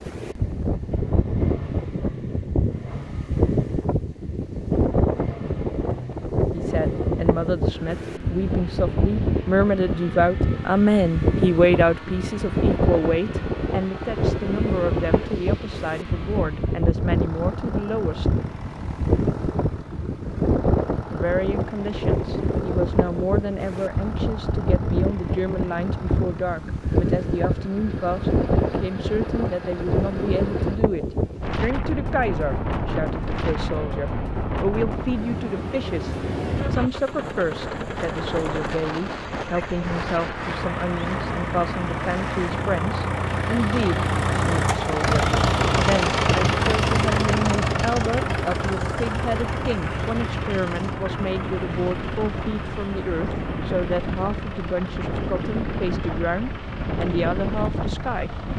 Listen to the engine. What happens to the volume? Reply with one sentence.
The volume of the engine goes up.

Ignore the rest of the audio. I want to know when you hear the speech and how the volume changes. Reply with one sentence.
The speech can be heard from 6.5 to 18.2 s, getting louder then quieter; and from 21.1 to 58.5 s, at a steady volume.